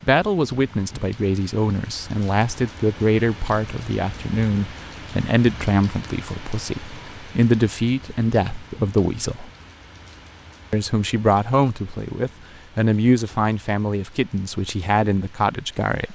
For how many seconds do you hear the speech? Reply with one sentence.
The speech can be heard for 15 seconds in total.